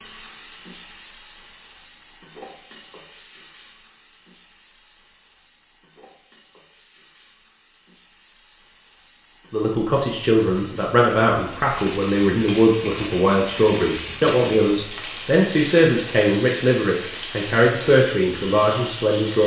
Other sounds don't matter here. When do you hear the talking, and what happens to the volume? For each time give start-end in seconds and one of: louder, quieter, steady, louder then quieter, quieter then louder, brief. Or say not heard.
9.5-19.4 steady.